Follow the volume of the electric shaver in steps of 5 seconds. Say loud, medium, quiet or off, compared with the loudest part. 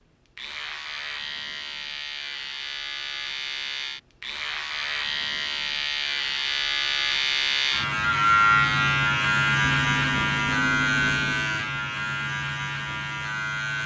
medium, loud, loud.